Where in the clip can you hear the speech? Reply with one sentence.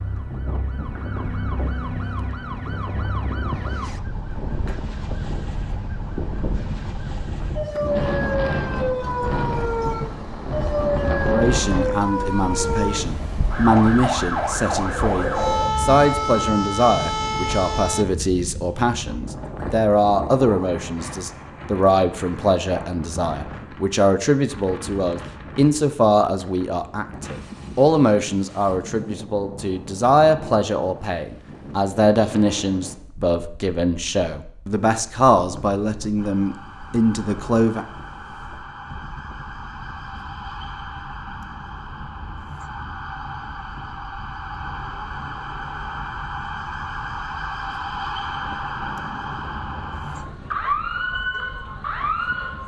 You can hear the speech from 11.2 to 37.9 s.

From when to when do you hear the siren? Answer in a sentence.
The siren can be heard from 0.0 to 18.1 s and from 36.1 to 52.6 s.